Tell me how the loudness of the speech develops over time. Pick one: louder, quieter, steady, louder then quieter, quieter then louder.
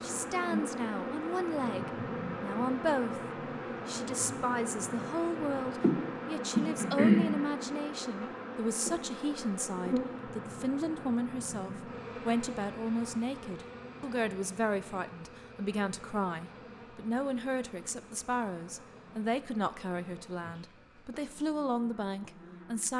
steady.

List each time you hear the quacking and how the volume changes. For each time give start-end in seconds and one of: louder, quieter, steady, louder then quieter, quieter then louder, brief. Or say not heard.
not heard.